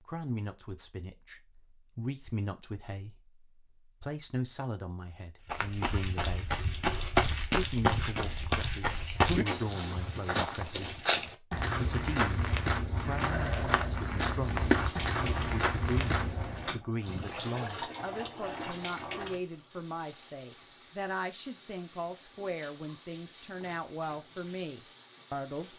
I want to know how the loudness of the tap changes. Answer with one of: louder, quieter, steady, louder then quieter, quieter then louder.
quieter.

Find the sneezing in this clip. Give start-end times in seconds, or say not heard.
not heard.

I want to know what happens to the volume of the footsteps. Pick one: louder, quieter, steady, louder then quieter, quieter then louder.
steady.